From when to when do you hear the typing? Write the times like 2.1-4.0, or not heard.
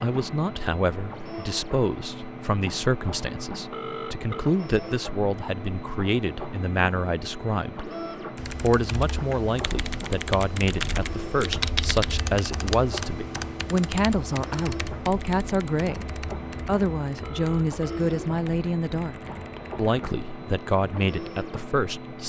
8.3-19.9.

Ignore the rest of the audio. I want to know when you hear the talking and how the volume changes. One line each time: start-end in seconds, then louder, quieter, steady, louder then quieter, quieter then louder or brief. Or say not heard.
0.0-7.9 steady
8.6-19.1 steady
19.8-22.2 brief.